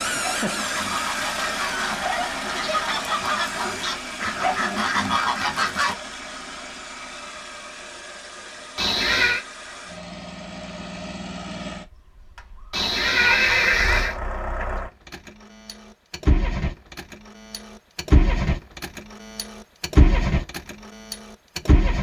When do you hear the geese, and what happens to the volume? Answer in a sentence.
You can hear the geese from 0.1 to 6.0 s, getting louder.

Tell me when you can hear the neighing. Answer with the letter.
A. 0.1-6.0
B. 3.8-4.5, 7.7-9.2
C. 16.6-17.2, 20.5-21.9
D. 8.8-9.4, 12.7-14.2
D.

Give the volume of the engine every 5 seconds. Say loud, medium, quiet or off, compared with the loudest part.
loud, medium, medium, loud, loud.